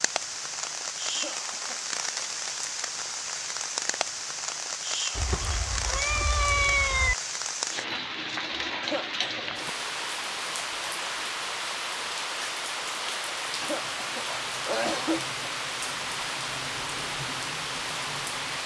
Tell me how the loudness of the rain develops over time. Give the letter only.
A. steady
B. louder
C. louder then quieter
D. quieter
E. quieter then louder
A.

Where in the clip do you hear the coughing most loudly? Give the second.
15 s.